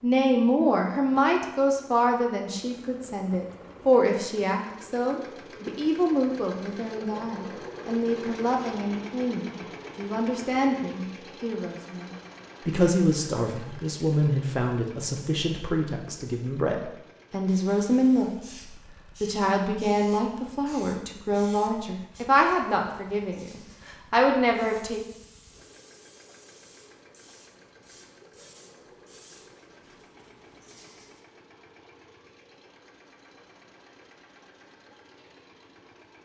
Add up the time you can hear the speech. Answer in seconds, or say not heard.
24 s.